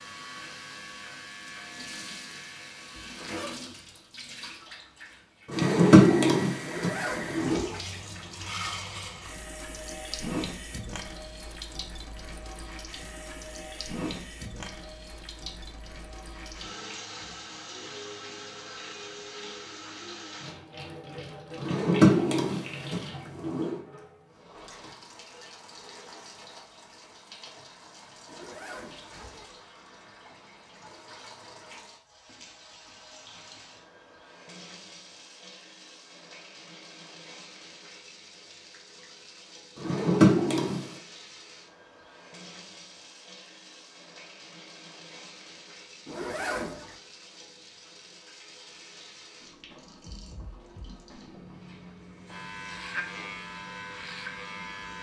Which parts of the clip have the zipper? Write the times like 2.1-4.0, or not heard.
6.6-7.8, 28.2-29.4, 46.0-47.0.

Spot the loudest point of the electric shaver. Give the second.
53 s.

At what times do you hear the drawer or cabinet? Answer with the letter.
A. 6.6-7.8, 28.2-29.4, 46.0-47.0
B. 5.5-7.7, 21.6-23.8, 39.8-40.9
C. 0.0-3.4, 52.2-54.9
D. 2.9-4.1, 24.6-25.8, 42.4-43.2
B.